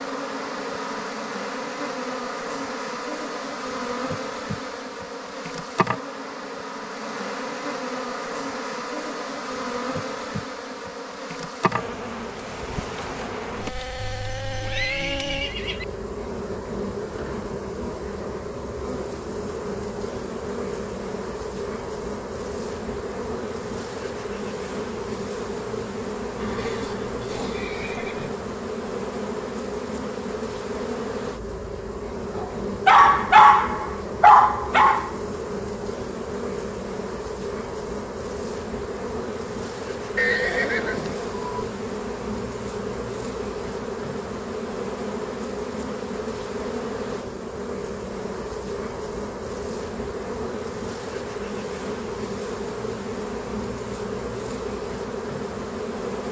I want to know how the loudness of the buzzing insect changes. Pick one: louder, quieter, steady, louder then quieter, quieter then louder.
steady.